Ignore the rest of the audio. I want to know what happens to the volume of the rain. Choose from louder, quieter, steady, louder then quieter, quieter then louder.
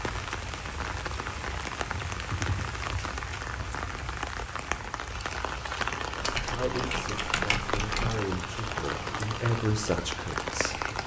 steady.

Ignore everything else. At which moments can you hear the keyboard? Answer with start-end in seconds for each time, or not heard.
2.1-3.1, 6.2-8.2.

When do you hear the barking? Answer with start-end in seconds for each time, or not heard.
not heard.